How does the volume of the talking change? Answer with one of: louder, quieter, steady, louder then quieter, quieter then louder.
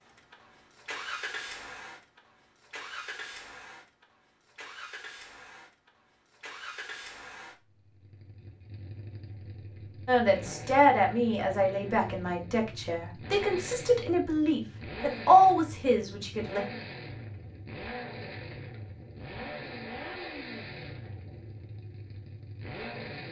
quieter then louder.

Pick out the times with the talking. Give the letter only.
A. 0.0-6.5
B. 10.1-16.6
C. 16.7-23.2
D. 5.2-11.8
B.